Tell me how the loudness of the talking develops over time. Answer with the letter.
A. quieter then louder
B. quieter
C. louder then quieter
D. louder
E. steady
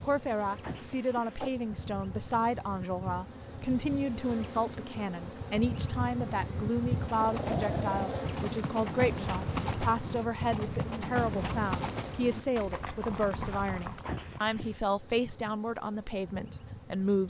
E.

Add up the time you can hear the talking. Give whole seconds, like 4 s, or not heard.
17 s.